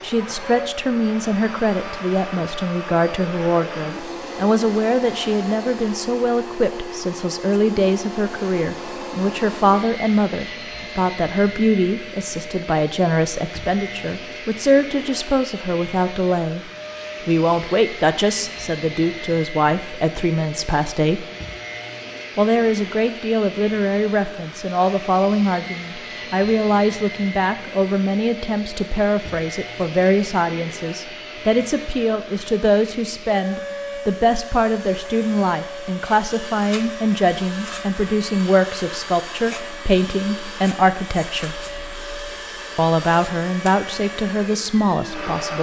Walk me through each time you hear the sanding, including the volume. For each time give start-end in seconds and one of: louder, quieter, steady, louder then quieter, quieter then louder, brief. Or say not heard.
not heard.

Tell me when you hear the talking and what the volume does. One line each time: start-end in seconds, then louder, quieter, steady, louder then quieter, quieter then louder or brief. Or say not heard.
0.0-21.2 steady
22.4-41.6 steady
42.8-45.5 brief.